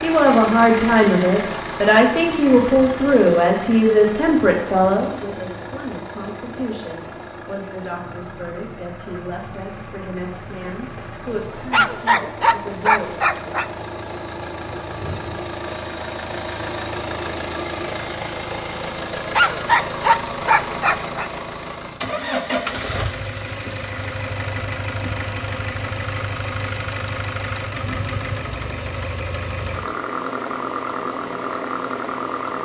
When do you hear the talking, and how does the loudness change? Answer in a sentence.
The talking can be heard from 0.0 to 13.1 s, getting quieter.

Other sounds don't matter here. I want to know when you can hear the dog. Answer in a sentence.
The dog can be heard from 11.7 to 13.7 s and from 19.4 to 21.3 s.